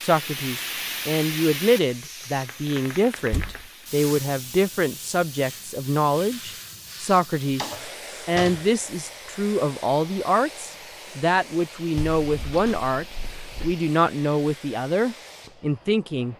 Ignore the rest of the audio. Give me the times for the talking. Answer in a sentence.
The talking can be heard from 0.0 to 16.3 s.